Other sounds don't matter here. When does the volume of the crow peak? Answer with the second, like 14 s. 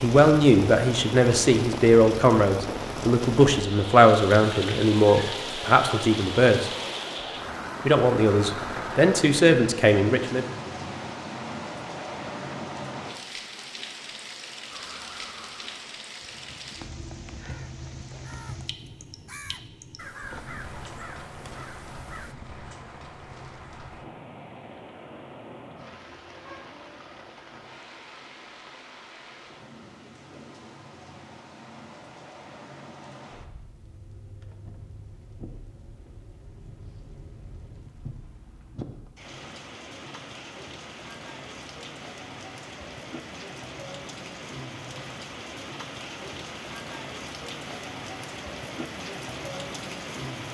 20 s.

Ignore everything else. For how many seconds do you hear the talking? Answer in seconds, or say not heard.
9 s.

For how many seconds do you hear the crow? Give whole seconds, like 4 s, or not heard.
8 s.